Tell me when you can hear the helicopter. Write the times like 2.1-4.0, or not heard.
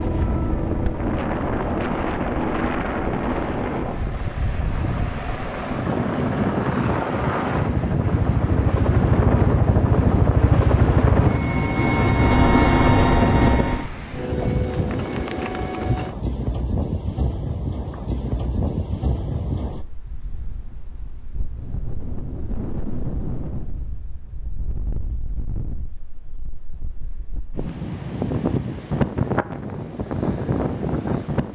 0.0-13.8.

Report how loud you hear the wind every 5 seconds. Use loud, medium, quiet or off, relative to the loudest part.
loud, loud, loud, loud, medium, loud, loud.